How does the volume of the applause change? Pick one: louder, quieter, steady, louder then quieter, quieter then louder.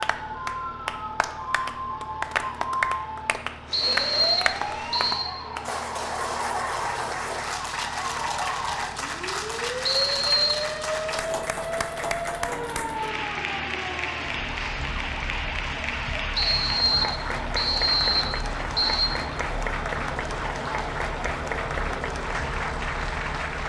steady.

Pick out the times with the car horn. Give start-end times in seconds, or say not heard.
not heard.